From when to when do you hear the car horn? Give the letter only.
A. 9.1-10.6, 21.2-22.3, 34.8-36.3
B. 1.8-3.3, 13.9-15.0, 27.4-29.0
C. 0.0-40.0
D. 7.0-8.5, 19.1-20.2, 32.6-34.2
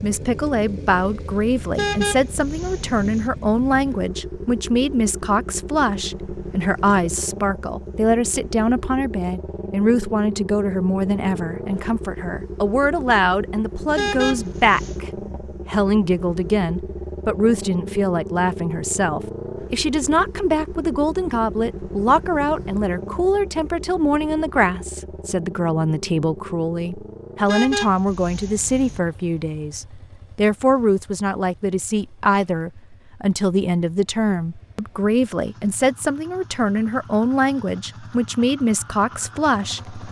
B.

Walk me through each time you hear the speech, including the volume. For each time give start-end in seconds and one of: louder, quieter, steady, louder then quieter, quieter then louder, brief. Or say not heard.
0.0-40.0 steady.